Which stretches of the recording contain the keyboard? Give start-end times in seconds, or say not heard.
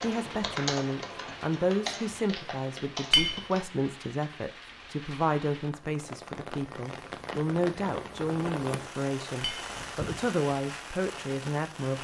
0.0-3.6.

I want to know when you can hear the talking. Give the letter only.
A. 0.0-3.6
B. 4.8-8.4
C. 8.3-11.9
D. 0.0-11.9
D.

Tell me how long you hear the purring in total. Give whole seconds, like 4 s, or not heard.
not heard.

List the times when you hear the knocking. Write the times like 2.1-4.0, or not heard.
not heard.